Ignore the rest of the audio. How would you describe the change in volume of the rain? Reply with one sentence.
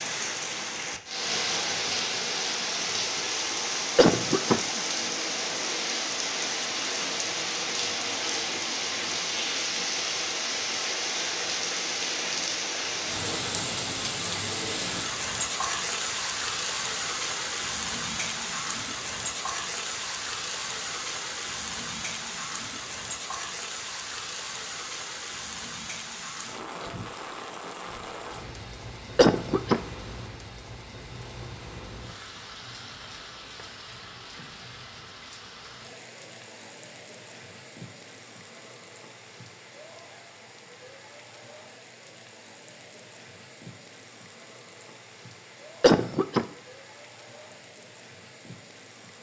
The volume of the rain goes down.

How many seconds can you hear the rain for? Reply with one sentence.
You can hear the rain for 49 seconds altogether.